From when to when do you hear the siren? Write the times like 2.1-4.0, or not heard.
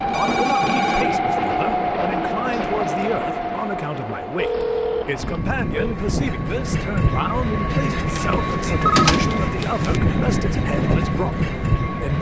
not heard.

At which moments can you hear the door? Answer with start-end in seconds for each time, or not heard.
8.2-10.0.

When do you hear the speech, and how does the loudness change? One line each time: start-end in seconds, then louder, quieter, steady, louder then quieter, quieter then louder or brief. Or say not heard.
0.0-12.1 steady.